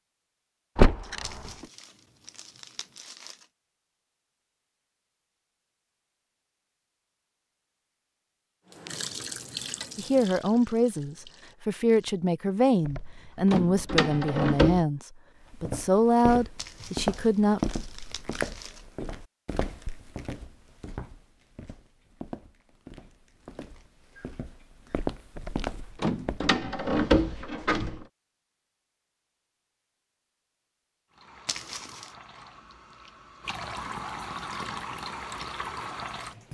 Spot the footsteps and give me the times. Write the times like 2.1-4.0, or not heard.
15.4-26.4.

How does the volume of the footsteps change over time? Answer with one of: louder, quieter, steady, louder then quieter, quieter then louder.
quieter then louder.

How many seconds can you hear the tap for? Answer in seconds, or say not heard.
9 s.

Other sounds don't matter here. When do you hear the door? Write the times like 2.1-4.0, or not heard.
0.8-1.6, 12.8-14.8, 25.4-28.1.